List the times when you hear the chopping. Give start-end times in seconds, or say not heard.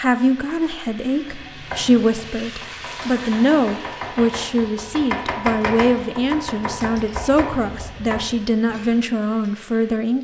1.2-9.0.